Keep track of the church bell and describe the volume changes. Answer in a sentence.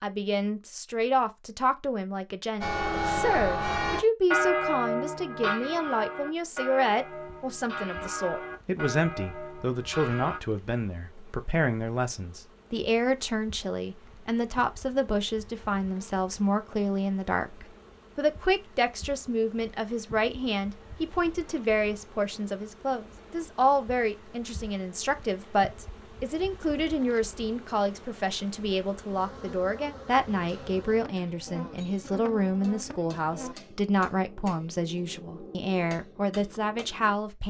The loudness of the church bell goes down.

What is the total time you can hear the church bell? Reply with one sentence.
You can hear the church bell for 8 seconds altogether.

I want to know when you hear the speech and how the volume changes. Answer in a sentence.
You can hear the speech from 0.0 to 37.4 s, at a steady volume.